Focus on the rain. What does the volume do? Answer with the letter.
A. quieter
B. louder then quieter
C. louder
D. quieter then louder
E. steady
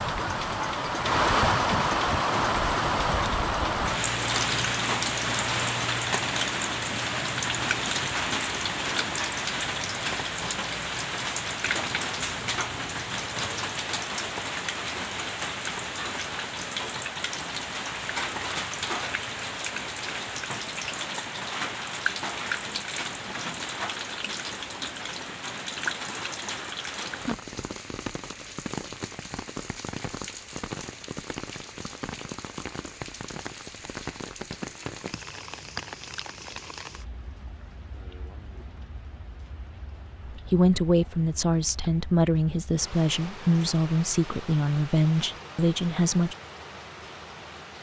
A.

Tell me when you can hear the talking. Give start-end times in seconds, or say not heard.
40.3-46.4.